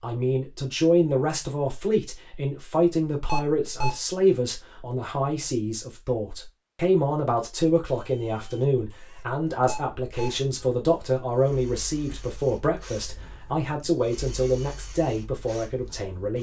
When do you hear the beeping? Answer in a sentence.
You can hear the beeping from 3.2 to 4.0 s and from 9.7 to 10.4 s.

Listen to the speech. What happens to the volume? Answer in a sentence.
The loudness of the speech stays about the same.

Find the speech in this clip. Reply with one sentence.
You can hear the speech from 0.0 to 16.3 s.